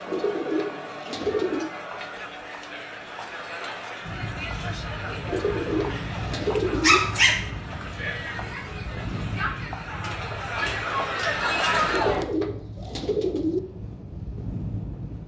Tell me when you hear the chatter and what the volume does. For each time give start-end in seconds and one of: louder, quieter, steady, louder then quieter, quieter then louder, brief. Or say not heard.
0.0-12.2 louder.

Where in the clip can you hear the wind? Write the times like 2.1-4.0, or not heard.
4.0-15.2.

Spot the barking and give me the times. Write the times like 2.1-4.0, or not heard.
6.8-7.5.